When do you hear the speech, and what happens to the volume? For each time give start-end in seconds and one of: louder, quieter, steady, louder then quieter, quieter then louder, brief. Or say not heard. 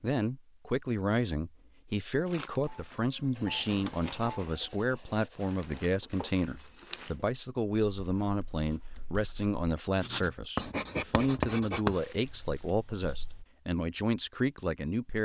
0.0-15.2 steady.